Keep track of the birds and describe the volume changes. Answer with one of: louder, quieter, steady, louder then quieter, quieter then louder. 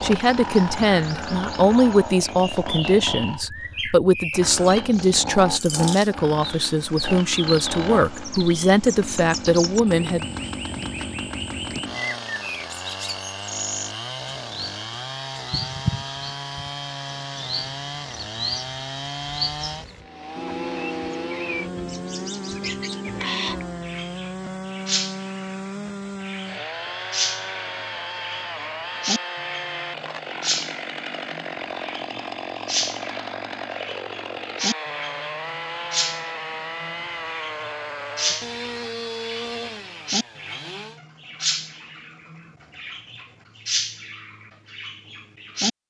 steady.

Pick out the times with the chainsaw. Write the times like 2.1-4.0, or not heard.
0.0-41.0.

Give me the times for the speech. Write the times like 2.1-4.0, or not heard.
0.0-10.2.